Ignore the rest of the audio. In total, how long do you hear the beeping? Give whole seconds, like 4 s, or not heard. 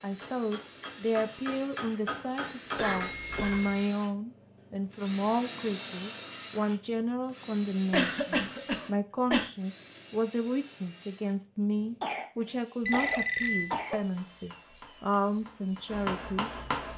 2 s.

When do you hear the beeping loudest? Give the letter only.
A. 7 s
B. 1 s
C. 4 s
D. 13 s
D.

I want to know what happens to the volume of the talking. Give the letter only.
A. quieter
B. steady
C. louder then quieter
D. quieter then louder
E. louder
B.